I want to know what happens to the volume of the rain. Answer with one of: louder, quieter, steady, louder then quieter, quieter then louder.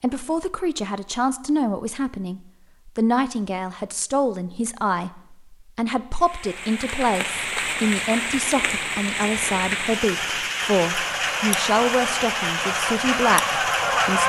steady.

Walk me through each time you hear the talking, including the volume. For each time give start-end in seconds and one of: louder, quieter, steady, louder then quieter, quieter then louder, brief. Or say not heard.
0.0-14.2 steady.